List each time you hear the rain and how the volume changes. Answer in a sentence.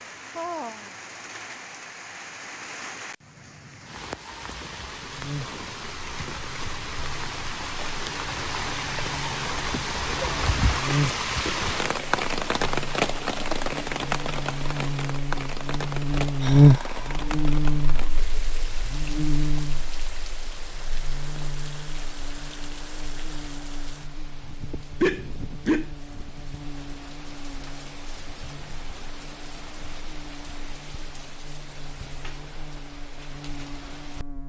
You can hear the rain from 0.0 to 34.4 s, getting louder then quieter.